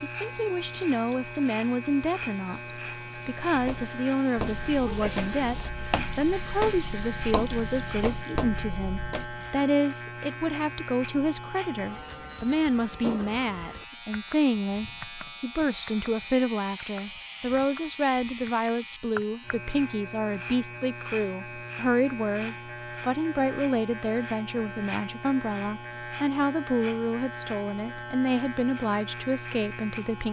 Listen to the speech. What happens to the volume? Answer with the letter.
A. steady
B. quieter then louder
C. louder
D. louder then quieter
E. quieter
A.